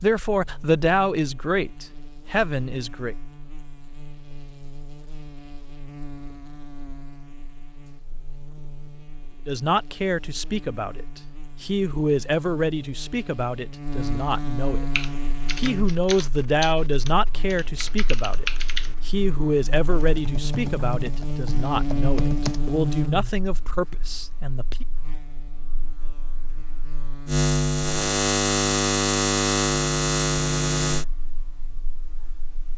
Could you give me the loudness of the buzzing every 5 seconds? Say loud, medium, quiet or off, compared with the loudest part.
quiet, quiet, quiet, quiet, medium, loud, loud.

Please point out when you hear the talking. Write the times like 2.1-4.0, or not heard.
0.0-3.1, 9.4-24.9.